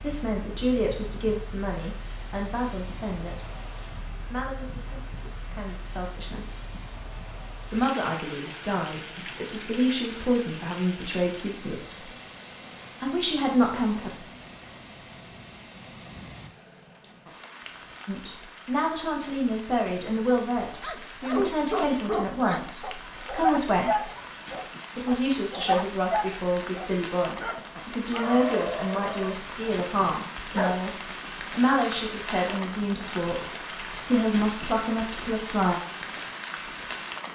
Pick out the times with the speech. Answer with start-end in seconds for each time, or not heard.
0.0-3.5, 4.3-6.7, 7.7-12.1, 13.0-14.2, 18.1-24.1, 24.9-35.8.